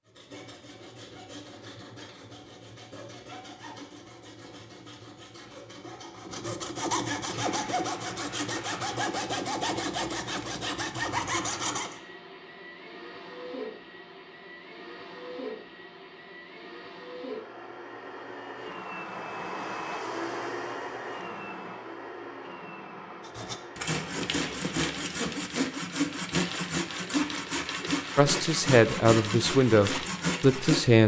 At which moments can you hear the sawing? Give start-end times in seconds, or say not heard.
0.1-12.0, 23.2-31.0.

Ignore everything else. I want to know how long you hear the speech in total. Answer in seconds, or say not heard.
3 s.